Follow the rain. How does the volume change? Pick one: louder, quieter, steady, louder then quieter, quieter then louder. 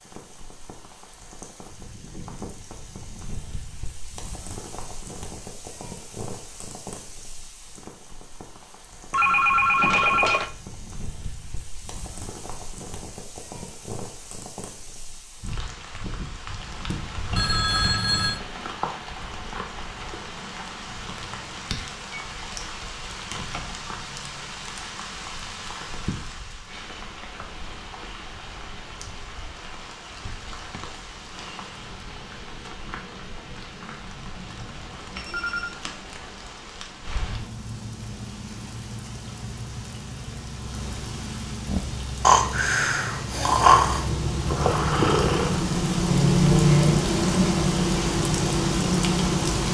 louder.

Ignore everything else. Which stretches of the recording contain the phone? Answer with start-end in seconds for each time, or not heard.
9.1-10.5, 17.4-18.4, 35.1-35.8.